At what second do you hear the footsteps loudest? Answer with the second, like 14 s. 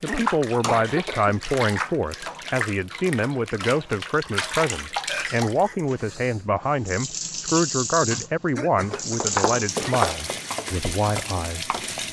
10 s.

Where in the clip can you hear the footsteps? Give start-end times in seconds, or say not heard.
8.9-12.0.